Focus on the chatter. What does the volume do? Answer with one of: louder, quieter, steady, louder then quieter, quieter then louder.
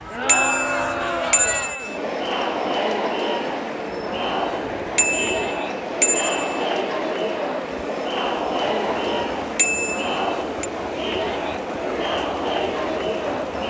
steady.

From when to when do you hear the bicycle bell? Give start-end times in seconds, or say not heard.
0.2-2.0, 5.0-6.7, 9.6-10.7.